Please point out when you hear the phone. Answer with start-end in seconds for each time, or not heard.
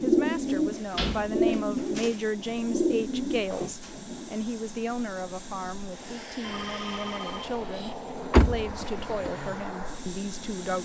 6.4-8.0.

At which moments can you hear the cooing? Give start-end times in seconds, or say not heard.
0.0-4.3.